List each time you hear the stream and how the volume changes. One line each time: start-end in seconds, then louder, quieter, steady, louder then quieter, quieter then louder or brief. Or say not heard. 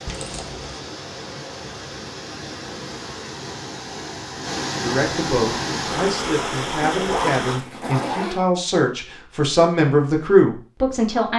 0.0-7.7 louder.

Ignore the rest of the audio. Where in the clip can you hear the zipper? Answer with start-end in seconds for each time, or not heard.
0.1-0.8, 7.0-8.4.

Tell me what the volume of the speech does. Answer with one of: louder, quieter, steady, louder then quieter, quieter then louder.
louder.